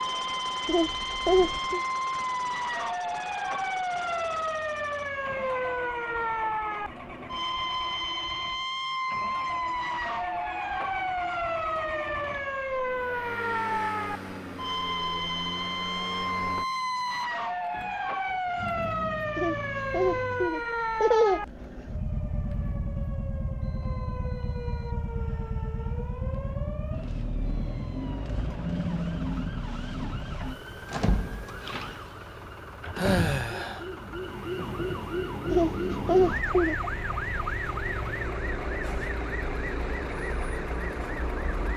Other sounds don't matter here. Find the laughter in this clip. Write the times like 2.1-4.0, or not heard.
0.7-1.8, 19.4-21.9, 35.5-36.8.